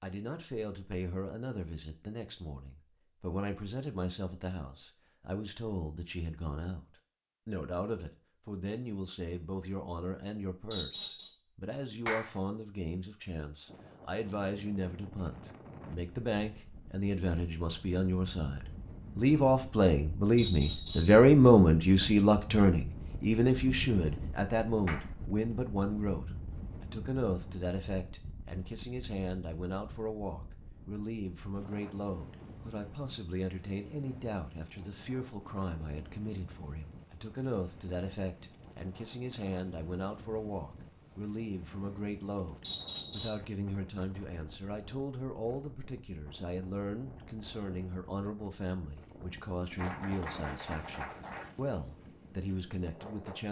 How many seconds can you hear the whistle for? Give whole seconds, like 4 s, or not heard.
2 s.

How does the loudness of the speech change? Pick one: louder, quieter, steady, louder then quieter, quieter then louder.
louder then quieter.